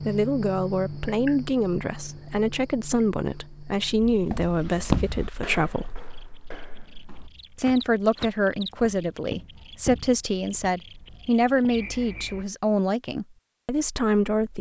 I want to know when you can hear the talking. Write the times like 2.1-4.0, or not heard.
0.0-6.0, 7.5-14.5.